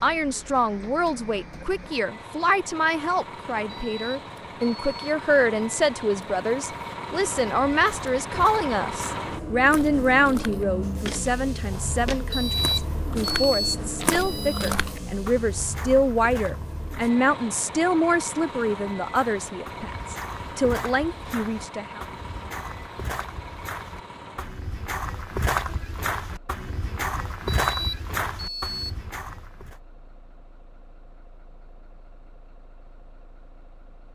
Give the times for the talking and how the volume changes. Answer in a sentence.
You can hear the talking from 0.0 to 22.0 s, at a steady volume.